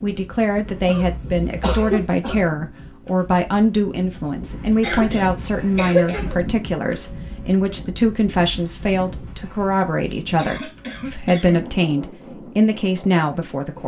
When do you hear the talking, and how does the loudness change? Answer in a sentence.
The talking can be heard from 0.0 to 13.8 s, at a steady volume.